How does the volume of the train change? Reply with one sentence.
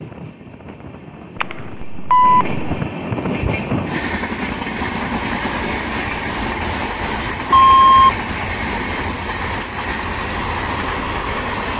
The volume of the train goes up.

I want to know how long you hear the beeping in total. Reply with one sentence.
You can hear the beeping for 2 seconds altogether.